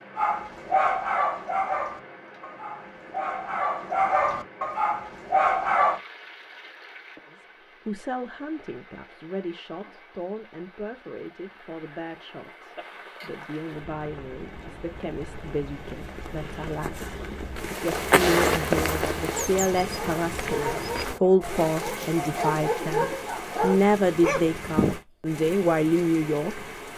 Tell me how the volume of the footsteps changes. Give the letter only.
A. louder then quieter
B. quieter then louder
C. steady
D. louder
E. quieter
E.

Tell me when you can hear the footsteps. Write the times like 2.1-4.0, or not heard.
17.6-22.1.